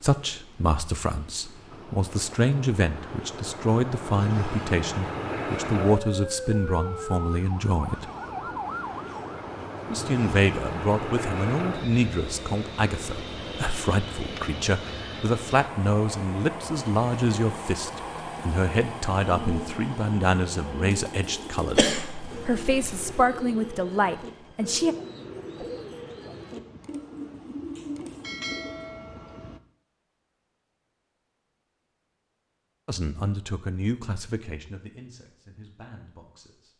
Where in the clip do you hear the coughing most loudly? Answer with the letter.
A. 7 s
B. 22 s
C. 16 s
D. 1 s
B.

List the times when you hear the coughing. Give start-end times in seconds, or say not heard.
21.8-23.2.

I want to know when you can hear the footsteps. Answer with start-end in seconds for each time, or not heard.
not heard.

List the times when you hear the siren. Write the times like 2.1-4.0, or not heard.
5.9-9.4.